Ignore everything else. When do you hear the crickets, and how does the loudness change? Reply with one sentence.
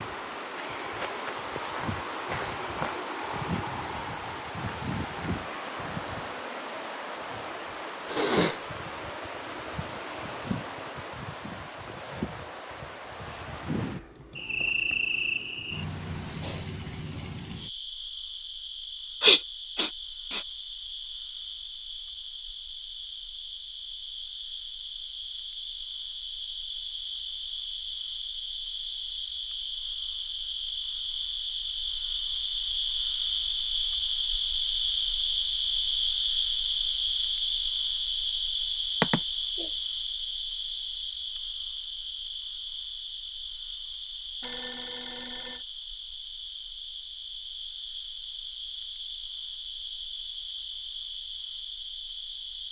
The crickets can be heard from 0.0 to 52.6 s, getting louder then quieter.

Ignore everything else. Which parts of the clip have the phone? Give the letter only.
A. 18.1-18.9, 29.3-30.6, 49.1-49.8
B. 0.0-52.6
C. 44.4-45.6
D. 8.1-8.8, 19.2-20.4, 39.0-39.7
C.